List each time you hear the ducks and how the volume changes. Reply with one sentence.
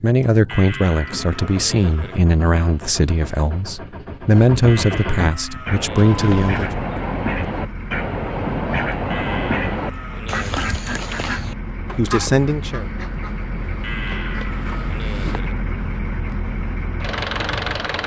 You can hear the ducks from 5.7 to 15.4 s, getting quieter.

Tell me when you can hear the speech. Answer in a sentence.
The speech can be heard from 0.0 to 6.7 s and from 11.9 to 12.8 s.